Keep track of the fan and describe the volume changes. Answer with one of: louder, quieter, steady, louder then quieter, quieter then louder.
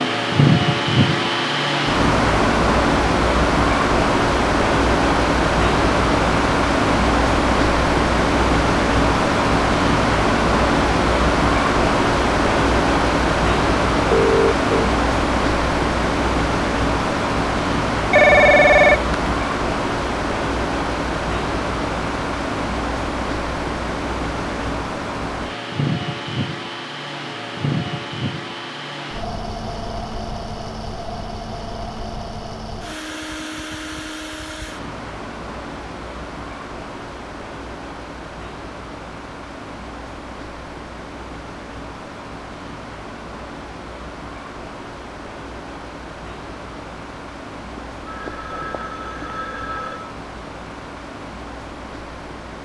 quieter.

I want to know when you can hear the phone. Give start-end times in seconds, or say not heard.
14.1-14.9, 18.1-19.1, 47.8-50.1.